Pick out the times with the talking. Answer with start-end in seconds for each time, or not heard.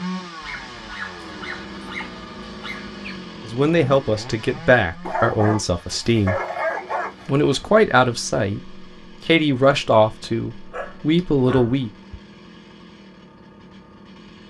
3.5-6.4, 7.2-11.9.